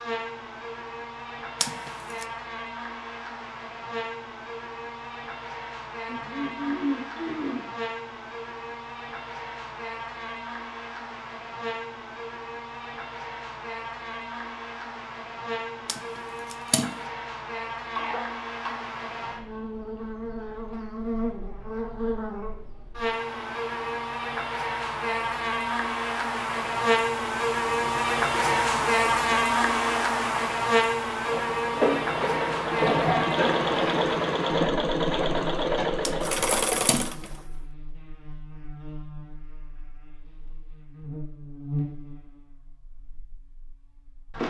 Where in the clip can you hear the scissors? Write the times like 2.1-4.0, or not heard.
1.6-2.2, 15.8-17.0, 36.0-37.1.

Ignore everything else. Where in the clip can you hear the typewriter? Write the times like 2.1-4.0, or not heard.
not heard.